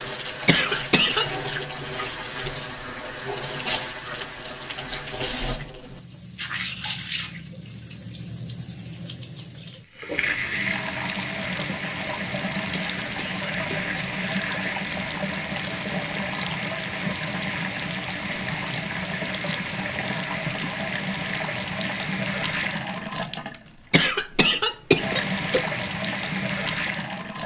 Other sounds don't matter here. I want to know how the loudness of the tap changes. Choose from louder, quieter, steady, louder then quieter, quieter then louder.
steady.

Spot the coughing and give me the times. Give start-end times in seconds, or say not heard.
0.5-1.3, 12.7-13.9, 23.9-25.6.